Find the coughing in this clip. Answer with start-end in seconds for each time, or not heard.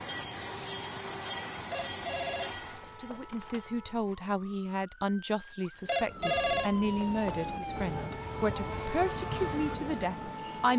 not heard.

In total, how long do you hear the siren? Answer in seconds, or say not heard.
8 s.